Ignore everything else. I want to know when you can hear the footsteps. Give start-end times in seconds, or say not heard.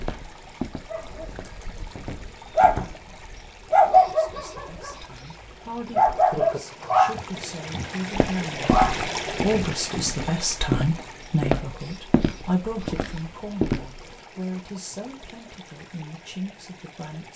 0.0-3.0, 8.1-14.2.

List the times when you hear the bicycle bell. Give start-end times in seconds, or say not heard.
not heard.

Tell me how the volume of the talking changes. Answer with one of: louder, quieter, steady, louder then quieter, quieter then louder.
louder then quieter.